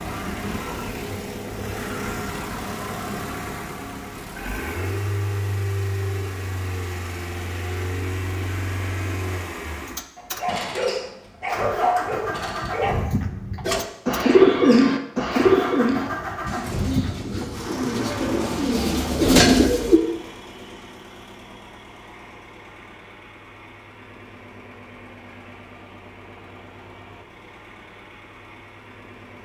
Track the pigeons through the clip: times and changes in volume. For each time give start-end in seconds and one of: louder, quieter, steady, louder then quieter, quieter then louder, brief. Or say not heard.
13.7-20.0 quieter then louder.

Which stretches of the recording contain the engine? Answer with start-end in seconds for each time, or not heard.
0.0-29.3.